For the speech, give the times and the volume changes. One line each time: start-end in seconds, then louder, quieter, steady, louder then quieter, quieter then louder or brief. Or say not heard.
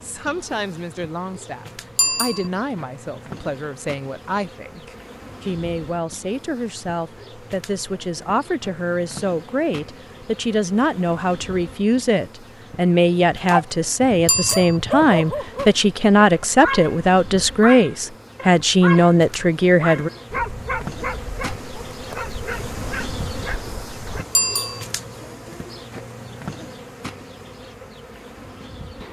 0.0-20.1 louder.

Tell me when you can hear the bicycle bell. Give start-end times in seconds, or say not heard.
1.9-2.5, 14.2-14.8, 24.4-24.9.